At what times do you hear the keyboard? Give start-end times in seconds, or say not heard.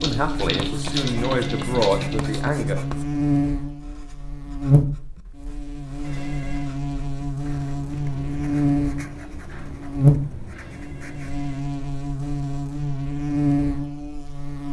0.0-2.5.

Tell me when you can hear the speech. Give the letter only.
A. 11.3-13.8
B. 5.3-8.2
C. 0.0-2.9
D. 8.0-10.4
C.